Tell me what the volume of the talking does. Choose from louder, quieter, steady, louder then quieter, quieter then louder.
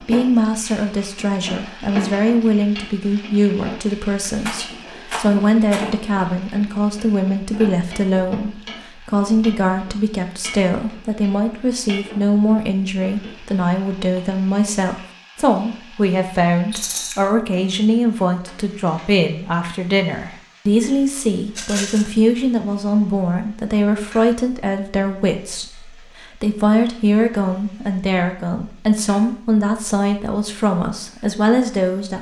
steady.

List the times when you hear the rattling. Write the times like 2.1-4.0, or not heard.
4.4-5.8, 16.7-17.1, 21.6-22.1.